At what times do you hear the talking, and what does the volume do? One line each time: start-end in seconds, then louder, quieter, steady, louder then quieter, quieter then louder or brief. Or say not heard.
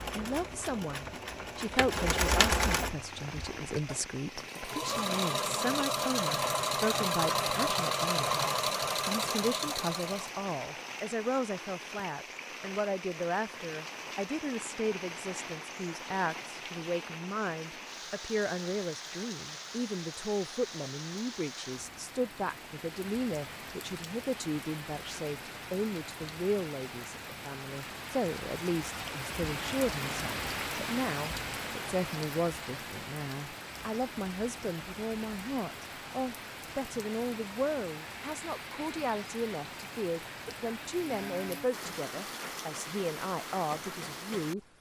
0.0-44.6 steady.